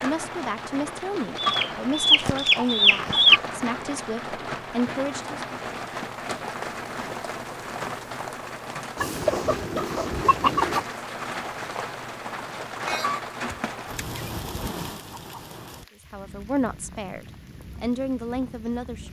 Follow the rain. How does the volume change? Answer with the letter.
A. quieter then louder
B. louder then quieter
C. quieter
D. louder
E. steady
C.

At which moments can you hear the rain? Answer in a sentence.
You can hear the rain from 0.0 to 19.0 s.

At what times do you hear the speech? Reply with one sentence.
You can hear the speech from 0.0 to 5.4 s and from 16.1 to 19.0 s.